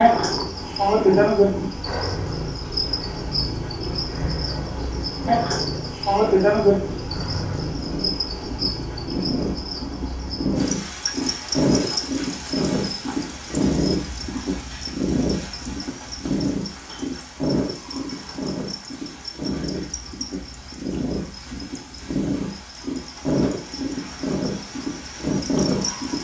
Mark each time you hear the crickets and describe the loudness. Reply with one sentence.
The crickets can be heard from 0.0 to 26.1 s, getting quieter.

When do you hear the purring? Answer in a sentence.
The purring can be heard from 0.0 to 26.1 s.